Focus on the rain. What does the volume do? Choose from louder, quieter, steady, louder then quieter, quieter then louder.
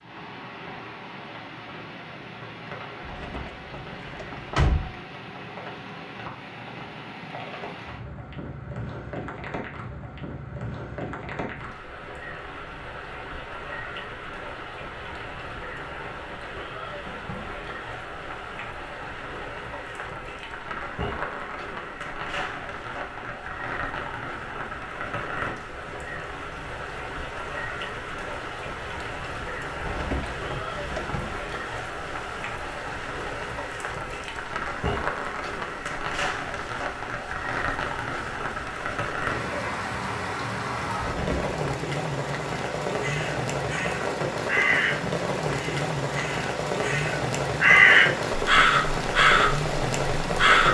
louder.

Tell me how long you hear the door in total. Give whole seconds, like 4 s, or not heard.
4 s.